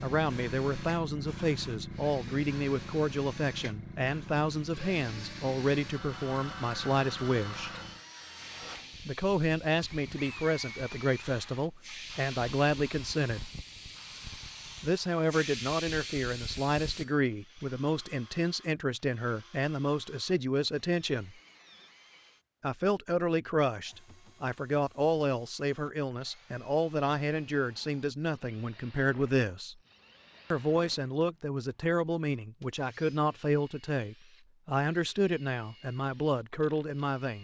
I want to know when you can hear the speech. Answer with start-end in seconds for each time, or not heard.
0.0-7.7, 9.1-13.5, 14.8-21.4, 22.6-29.8, 30.5-37.3.